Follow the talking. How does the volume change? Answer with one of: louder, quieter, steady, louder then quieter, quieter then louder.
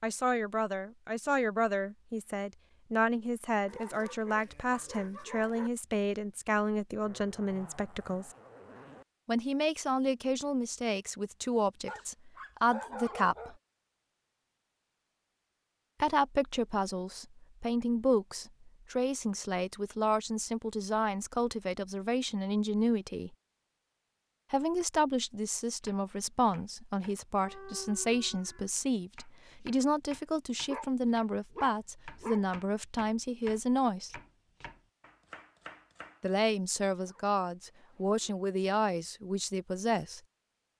steady.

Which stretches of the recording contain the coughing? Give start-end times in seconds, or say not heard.
not heard.